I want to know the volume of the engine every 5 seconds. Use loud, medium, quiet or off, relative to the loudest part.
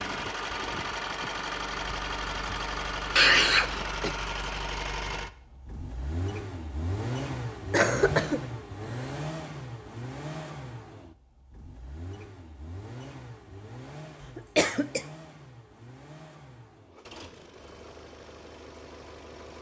loud, loud, medium, quiet.